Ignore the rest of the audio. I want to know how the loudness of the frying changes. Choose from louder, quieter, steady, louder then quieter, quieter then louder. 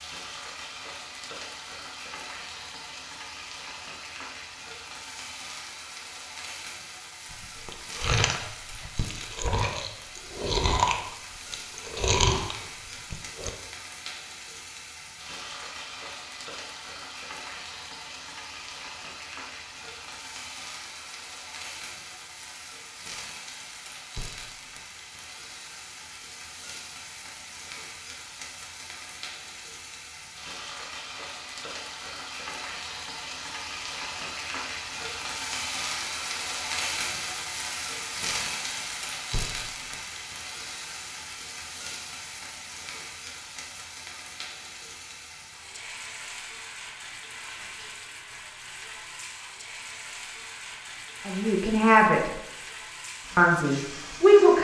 louder then quieter.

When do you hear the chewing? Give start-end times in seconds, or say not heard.
7.3-13.5.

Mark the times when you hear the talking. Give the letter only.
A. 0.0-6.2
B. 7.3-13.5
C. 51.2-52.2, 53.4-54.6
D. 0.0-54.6
C.